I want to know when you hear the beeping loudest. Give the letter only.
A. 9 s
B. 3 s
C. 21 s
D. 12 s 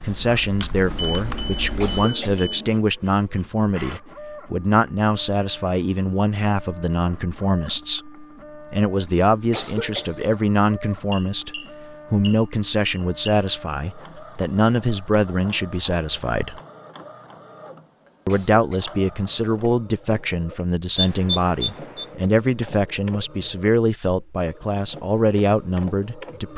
C.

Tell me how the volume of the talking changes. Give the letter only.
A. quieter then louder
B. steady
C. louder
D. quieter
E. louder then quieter
B.